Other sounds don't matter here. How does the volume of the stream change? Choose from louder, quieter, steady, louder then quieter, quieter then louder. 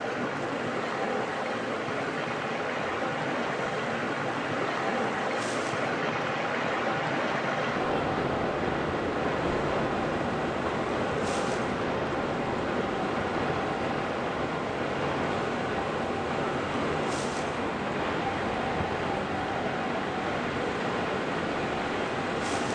steady.